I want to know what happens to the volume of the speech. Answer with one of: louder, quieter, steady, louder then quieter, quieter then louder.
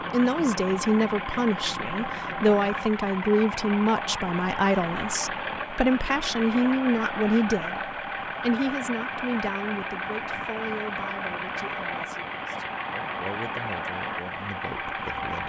quieter.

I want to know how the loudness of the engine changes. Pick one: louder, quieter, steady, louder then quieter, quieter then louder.
steady.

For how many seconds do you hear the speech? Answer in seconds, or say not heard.
15 s.